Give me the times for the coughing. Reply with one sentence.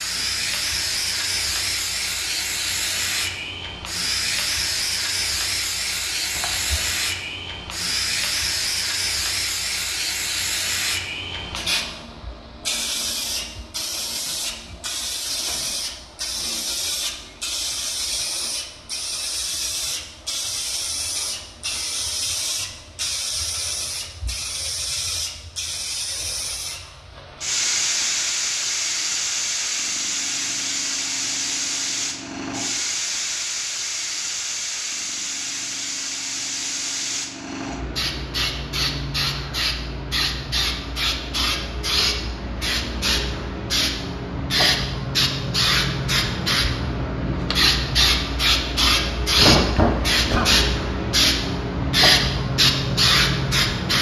You can hear the coughing from 6.3 to 6.8 s and from 49.4 to 50.5 s.